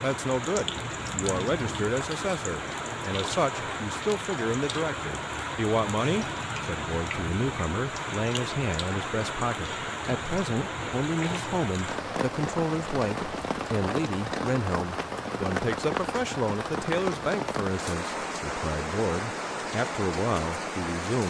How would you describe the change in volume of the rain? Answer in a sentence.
The loudness of the rain stays about the same.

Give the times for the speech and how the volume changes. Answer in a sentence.
You can hear the speech from 0.0 to 21.2 s, at a steady volume.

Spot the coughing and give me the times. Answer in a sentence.
You can't hear the coughing here.